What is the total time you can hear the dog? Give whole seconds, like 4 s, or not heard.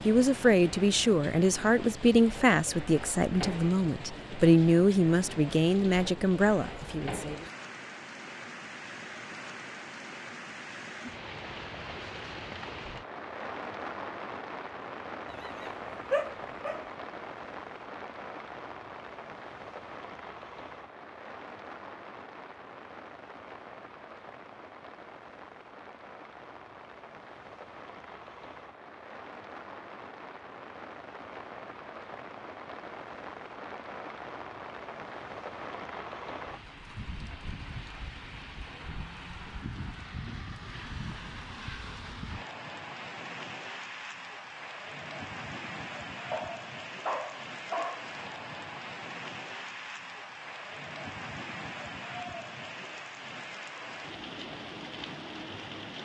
3 s.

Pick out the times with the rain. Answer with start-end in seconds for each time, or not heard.
0.0-56.0.